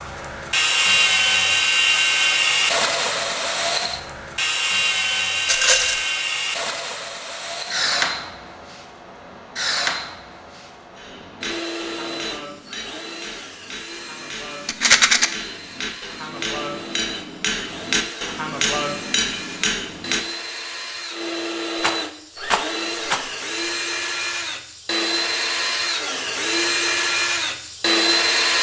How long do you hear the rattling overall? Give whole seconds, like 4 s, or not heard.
3 s.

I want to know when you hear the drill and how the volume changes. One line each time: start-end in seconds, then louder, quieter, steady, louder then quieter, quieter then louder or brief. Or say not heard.
0.0-28.5 quieter then louder.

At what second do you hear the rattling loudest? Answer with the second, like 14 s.
15 s.